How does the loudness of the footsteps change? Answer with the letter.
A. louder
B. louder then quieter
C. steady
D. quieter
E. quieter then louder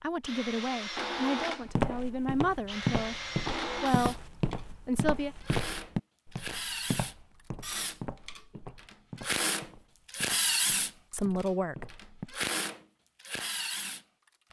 D.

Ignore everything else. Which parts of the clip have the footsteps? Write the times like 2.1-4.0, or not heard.
1.6-12.3.